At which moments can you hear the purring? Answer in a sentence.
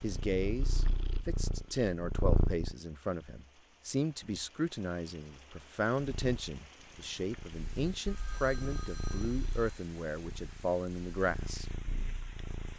You can hear the purring from 0.0 to 2.8 s and from 6.0 to 12.7 s.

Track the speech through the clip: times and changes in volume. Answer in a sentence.
The speech can be heard from 0.0 to 11.7 s, at a steady volume.